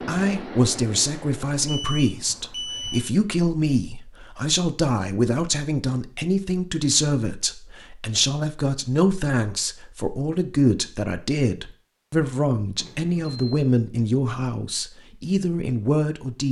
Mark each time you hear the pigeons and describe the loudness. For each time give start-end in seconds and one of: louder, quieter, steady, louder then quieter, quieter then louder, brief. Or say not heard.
not heard.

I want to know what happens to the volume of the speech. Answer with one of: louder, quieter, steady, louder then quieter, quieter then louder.
steady.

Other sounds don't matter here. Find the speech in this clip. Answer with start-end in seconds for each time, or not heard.
0.1-16.4.